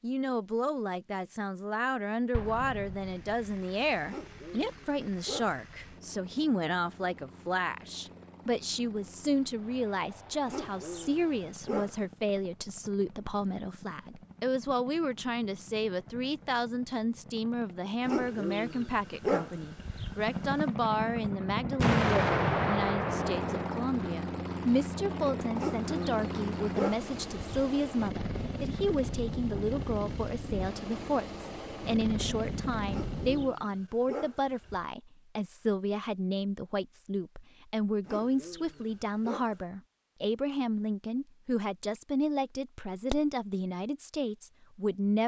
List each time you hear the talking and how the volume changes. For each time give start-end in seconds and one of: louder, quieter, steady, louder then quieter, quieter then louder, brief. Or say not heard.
0.0-45.2 steady.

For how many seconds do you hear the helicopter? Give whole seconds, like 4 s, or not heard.
31 s.